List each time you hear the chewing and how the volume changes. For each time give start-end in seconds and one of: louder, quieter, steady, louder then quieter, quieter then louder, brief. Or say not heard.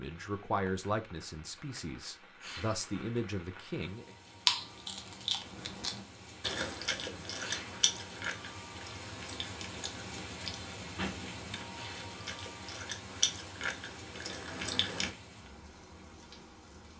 4.5-15.1 quieter then louder.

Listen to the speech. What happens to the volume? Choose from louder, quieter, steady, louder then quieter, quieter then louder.
quieter then louder.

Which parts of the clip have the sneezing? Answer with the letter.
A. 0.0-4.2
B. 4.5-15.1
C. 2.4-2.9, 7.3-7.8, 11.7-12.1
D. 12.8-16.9
C.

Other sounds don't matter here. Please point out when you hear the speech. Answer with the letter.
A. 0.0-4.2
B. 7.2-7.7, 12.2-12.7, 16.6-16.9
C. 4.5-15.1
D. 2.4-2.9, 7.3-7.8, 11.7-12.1
A.